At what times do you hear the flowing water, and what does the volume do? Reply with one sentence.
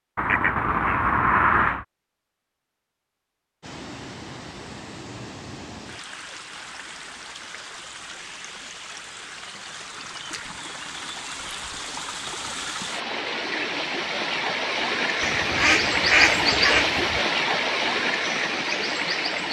You can hear the flowing water from 3.6 to 19.4 s, getting louder.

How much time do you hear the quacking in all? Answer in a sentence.
The quacking can be heard for 4 seconds in total.